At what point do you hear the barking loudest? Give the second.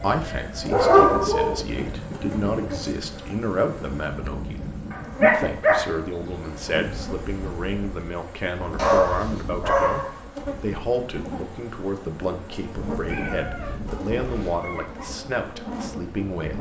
1 s.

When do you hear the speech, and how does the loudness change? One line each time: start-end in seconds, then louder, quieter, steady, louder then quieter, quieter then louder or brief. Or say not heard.
0.0-16.5 steady.